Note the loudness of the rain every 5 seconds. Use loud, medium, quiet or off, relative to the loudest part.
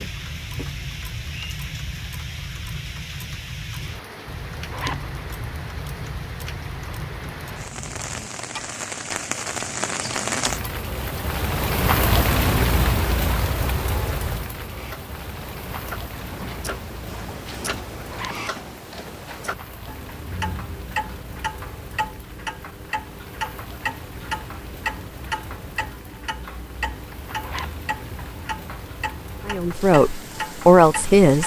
quiet, medium, loud, quiet, quiet, quiet, quiet.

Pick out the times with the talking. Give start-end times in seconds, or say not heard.
29.4-31.4.